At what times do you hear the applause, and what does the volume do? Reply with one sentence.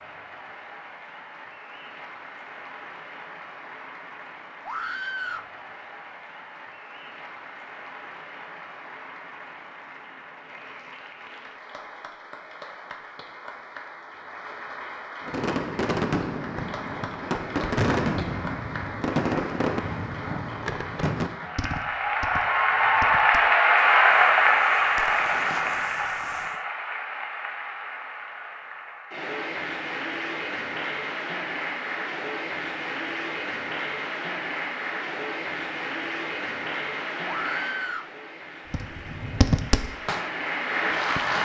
You can hear the applause from 0.0 to 41.4 s, getting louder then quieter.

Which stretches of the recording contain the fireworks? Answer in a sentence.
You can hear the fireworks from 15.2 to 26.6 s and from 38.7 to 41.4 s.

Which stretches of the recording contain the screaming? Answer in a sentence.
You can hear the screaming from 4.7 to 5.5 s and from 37.2 to 38.1 s.